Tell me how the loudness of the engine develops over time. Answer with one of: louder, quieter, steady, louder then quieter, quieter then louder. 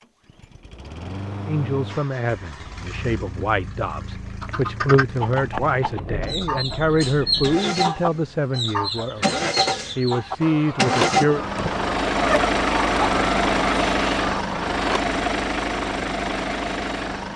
louder.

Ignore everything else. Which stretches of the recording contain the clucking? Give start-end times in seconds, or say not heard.
4.4-15.0.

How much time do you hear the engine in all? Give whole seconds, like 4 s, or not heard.
17 s.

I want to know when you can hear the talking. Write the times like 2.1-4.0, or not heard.
1.4-11.4.